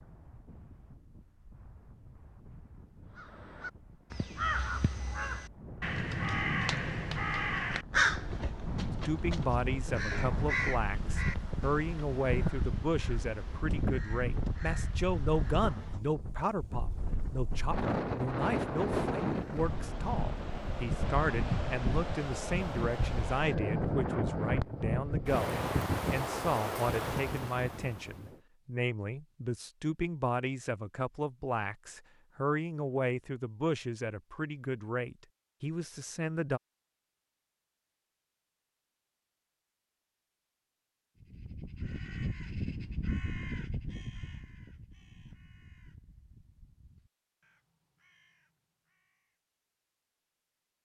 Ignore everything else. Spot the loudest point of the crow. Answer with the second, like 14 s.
8 s.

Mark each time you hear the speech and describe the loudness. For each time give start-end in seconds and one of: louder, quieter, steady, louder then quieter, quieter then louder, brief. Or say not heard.
9.1-36.6 steady.